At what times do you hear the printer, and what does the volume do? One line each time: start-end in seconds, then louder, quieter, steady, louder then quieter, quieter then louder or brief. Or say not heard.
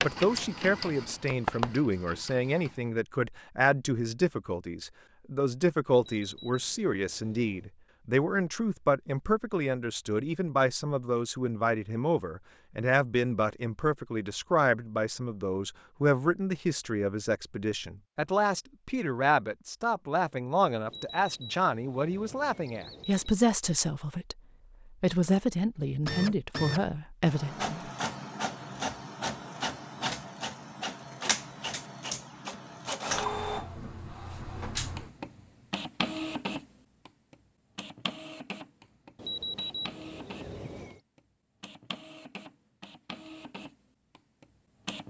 0.0-2.9 brief
26.1-45.0 quieter.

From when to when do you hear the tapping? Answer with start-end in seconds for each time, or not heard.
0.0-1.8.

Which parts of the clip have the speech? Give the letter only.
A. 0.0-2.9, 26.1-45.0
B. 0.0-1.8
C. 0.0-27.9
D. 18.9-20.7
C.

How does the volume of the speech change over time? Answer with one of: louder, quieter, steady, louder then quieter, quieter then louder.
steady.